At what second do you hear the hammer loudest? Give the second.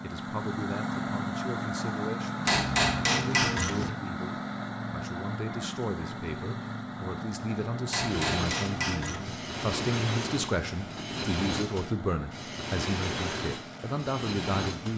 3 s.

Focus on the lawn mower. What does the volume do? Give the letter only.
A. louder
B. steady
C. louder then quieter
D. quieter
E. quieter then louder
D.